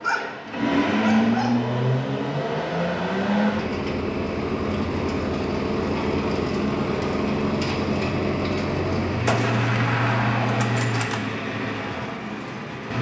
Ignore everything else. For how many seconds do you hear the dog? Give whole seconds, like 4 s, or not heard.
2 s.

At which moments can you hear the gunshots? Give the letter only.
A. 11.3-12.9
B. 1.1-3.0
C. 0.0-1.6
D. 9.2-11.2
D.